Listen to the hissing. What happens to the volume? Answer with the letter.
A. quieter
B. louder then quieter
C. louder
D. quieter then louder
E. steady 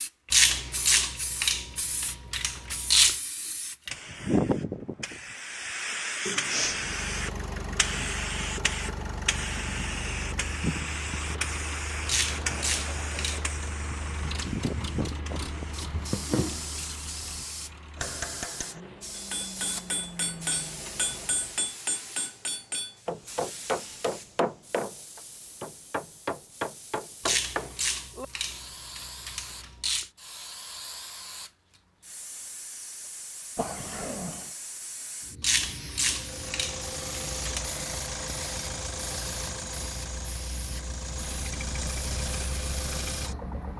A.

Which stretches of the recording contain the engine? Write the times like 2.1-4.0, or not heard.
6.6-21.7, 36.0-43.7.